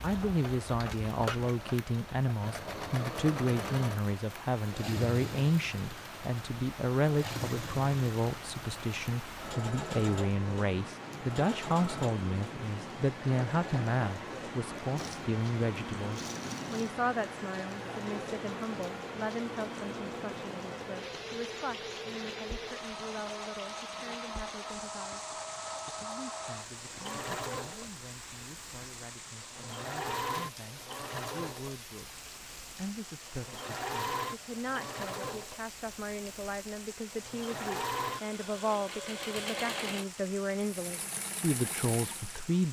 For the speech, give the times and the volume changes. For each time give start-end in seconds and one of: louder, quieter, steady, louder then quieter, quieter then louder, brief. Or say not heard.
0.0-42.6 quieter then louder.